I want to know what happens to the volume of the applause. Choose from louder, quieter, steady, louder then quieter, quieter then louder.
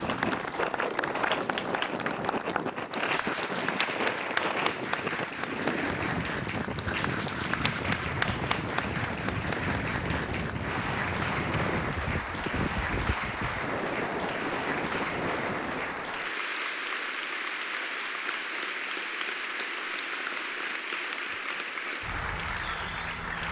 steady.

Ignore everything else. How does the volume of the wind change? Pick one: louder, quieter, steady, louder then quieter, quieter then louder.
steady.